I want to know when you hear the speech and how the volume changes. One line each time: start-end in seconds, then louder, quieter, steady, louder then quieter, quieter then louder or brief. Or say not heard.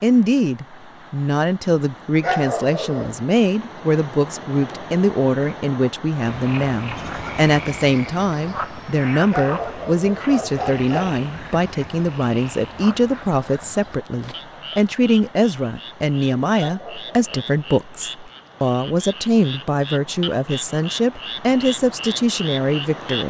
0.0-23.2 steady.